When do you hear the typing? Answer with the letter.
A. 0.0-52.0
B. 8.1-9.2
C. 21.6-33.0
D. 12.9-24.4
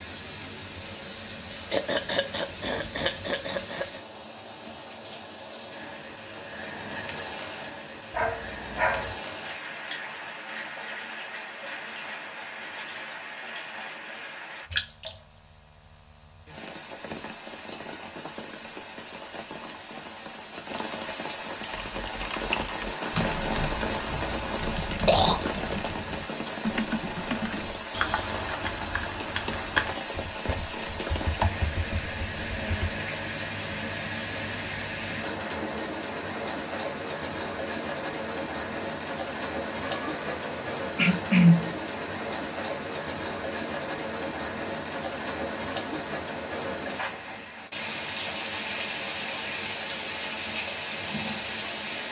C.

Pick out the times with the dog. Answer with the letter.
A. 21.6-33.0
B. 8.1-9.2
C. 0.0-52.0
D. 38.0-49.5
B.